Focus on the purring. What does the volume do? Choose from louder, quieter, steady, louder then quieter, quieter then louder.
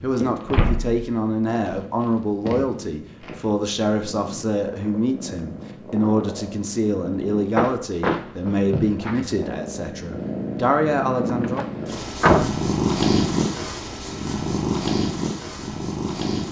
louder.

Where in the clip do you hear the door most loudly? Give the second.
12 s.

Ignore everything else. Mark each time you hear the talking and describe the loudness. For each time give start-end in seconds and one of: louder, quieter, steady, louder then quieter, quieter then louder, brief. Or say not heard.
0.0-11.8 steady.